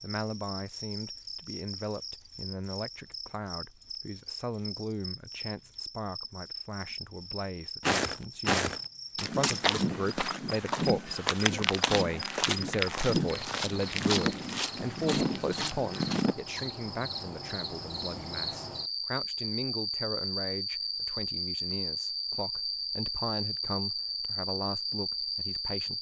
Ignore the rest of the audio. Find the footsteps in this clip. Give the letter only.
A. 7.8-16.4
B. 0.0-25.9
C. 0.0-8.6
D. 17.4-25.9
A.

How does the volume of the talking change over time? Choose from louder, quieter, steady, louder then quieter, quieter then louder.
louder then quieter.